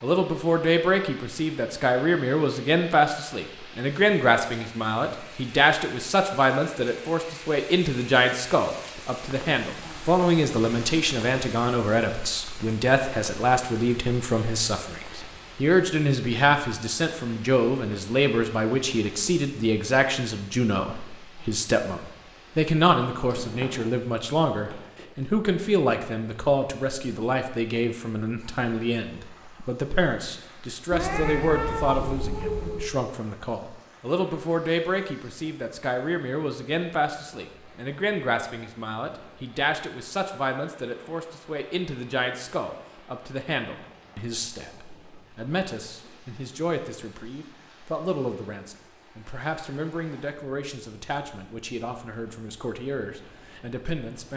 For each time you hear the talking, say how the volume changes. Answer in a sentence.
The talking can be heard from 0.0 to 54.3 s, getting quieter.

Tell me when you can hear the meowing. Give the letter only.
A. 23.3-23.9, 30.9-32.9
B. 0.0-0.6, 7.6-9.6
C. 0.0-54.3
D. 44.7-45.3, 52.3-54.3
A.